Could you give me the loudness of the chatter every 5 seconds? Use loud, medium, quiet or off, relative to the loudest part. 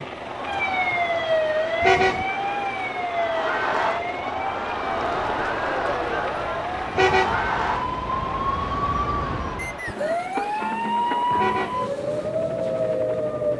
loud, loud, off.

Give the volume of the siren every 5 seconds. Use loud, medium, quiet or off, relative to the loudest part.
loud, medium, loud.